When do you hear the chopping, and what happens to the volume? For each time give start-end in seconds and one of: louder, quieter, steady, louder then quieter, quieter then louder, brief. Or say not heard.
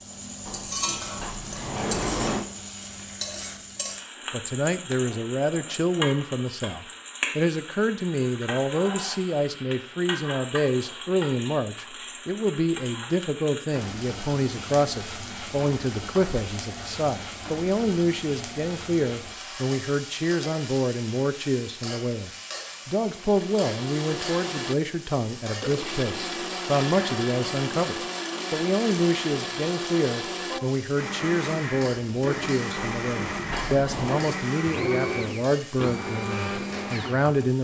not heard.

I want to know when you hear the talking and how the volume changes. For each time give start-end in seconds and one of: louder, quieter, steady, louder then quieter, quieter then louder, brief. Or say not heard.
4.3-37.6 steady.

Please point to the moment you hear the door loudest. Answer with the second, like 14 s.
2 s.